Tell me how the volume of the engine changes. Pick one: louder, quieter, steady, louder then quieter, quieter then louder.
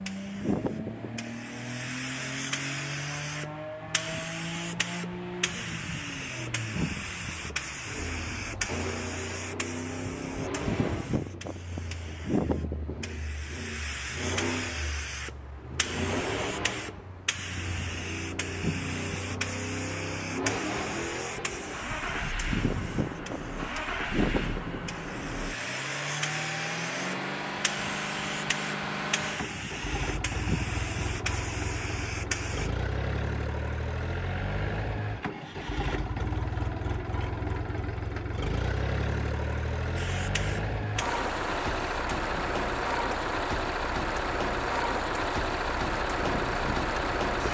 louder.